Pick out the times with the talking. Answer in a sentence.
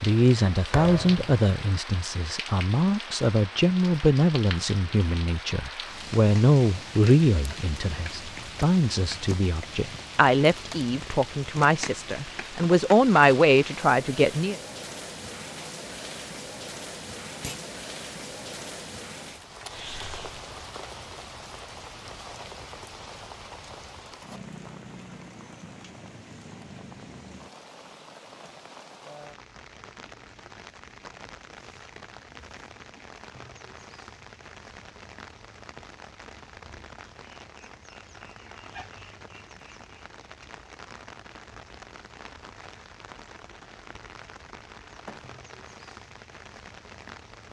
The talking can be heard from 0.0 to 14.6 s.